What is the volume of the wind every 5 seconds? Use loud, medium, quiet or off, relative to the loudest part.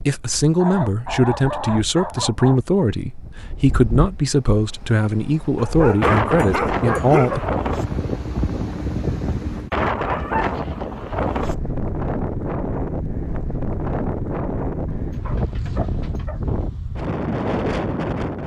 quiet, loud, loud, loud.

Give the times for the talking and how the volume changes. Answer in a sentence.
You can hear the talking from 0.0 to 7.4 s, at a steady volume.